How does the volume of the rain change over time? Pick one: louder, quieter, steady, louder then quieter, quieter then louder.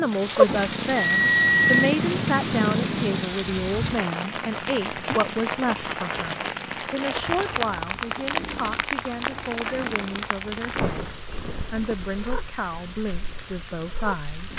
quieter.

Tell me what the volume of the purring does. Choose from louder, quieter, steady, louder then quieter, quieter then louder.
quieter.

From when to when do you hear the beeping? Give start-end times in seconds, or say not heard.
0.5-1.9.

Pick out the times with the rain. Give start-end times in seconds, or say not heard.
0.0-14.5.